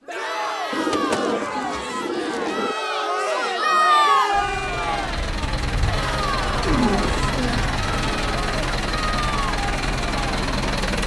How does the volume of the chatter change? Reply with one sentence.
The loudness of the chatter goes up, then down.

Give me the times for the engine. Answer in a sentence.
The engine can be heard from 4.3 to 11.0 s.